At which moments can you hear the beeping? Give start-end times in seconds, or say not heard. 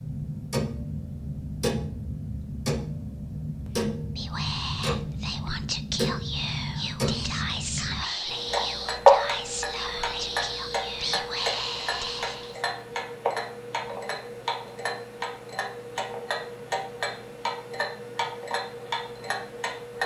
not heard.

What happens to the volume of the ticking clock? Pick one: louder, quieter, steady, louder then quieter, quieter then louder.
louder then quieter.